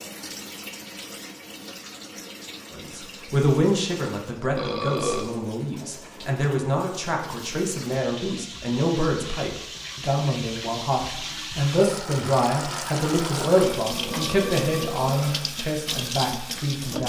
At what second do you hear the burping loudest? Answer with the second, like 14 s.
5 s.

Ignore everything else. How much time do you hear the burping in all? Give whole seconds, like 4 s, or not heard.
2 s.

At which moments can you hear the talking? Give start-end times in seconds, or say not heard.
2.7-17.0.